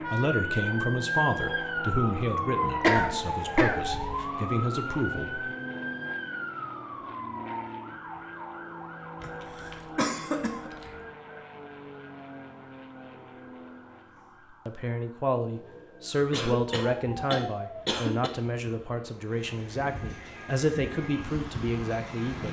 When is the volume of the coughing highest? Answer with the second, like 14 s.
3 s.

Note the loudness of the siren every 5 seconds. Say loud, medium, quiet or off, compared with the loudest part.
loud, medium, quiet, quiet, quiet.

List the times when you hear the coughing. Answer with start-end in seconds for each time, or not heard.
2.8-4.2, 9.2-11.0, 16.3-18.3.